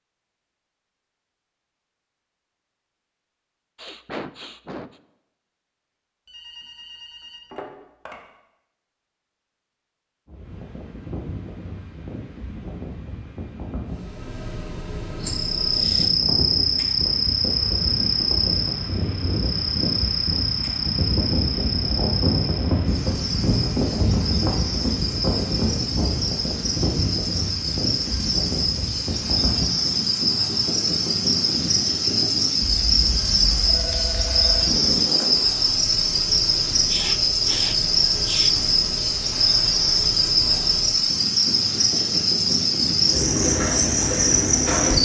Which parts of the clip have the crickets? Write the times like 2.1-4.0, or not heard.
15.2-45.0.